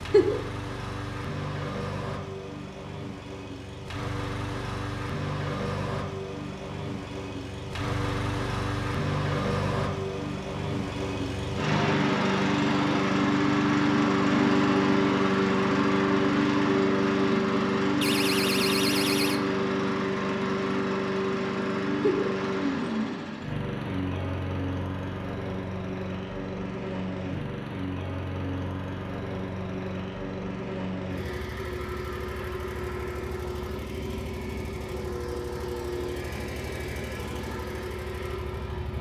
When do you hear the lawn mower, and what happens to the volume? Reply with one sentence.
The lawn mower can be heard from 0.0 to 38.9 s, getting louder then quieter.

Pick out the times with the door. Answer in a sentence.
You can hear the door from 18.0 to 19.4 s.